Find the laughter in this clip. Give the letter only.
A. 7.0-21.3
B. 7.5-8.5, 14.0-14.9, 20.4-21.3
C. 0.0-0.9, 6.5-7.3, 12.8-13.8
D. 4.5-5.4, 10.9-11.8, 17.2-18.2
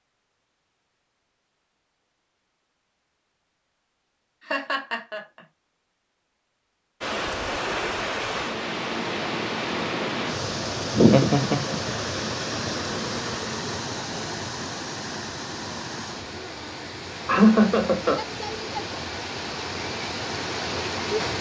D.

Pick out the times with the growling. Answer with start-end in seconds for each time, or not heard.
not heard.